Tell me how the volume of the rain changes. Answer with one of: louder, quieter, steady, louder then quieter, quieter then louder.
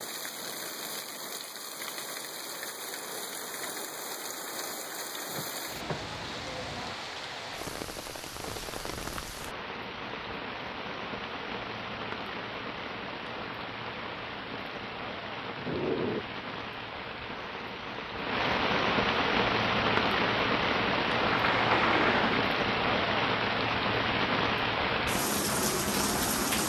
louder.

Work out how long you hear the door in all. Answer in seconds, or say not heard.
3 s.